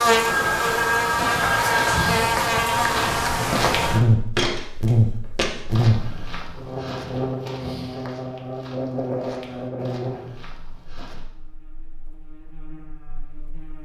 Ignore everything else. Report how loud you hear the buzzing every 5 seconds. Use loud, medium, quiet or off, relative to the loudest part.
loud, medium, quiet.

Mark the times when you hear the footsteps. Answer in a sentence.
The footsteps can be heard from 0.0 to 11.3 s.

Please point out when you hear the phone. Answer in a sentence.
The phone can be heard from 0.2 to 2.1 s.